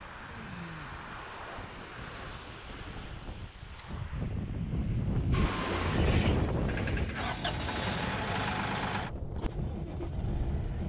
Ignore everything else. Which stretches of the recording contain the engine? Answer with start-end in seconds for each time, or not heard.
5.3-10.8.